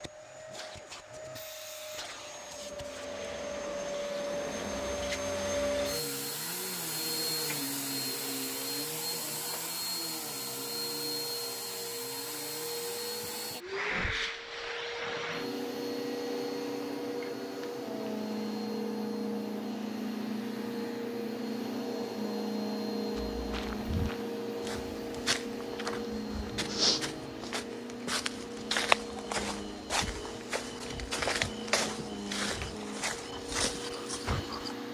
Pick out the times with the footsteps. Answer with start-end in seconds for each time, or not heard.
23.1-34.8.